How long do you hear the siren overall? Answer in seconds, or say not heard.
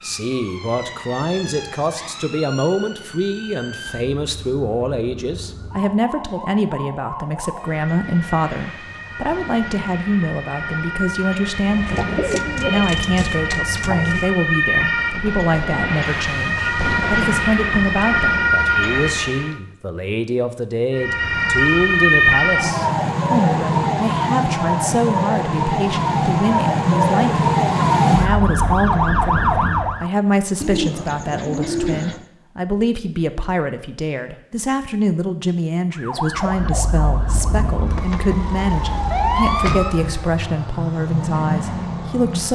35 s.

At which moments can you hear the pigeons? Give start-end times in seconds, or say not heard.
11.7-14.3, 30.6-32.2.